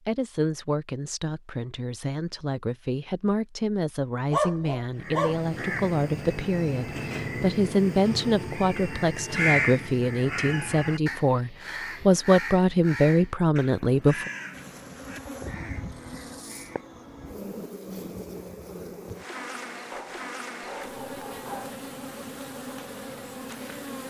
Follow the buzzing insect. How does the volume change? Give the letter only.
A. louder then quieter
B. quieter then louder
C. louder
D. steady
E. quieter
D.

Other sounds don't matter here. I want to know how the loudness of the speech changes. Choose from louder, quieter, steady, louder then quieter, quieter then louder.
louder.